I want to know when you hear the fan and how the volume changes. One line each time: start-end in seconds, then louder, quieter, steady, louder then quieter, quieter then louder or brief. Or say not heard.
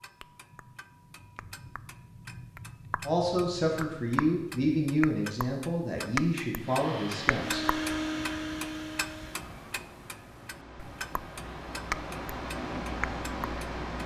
6.5-14.0 quieter then louder.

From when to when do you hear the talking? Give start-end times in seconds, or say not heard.
3.0-7.7.